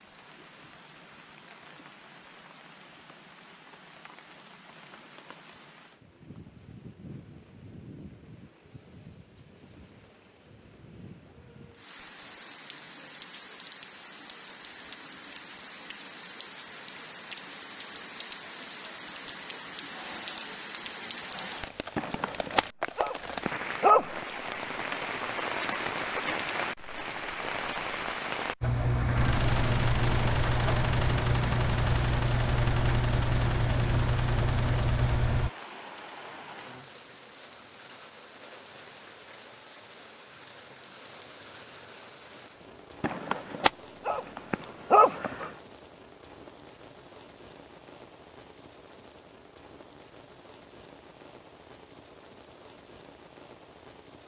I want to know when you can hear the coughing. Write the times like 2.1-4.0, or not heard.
not heard.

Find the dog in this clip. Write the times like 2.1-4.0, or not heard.
21.9-24.2, 43.0-45.5.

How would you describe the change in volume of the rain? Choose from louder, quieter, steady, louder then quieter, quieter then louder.
louder then quieter.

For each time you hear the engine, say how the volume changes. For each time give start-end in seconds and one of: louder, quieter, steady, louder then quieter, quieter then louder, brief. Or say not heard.
28.6-35.5 steady.